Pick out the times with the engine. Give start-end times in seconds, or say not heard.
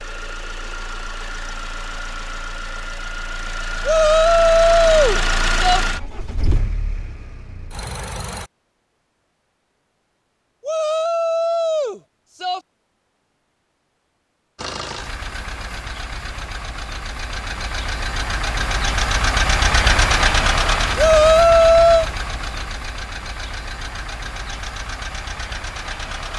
0.0-8.5, 14.6-26.3.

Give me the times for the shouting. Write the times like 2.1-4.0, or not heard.
3.9-5.8, 10.6-12.6, 20.9-22.1.